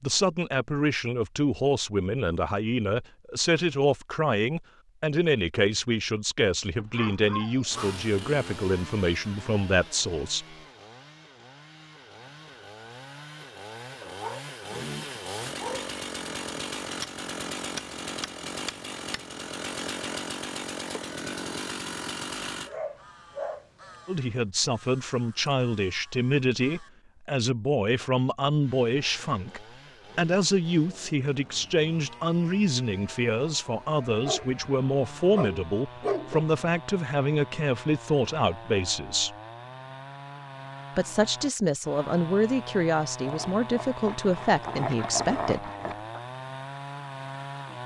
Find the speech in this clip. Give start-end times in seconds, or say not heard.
0.0-10.4, 24.1-39.3, 41.0-45.7.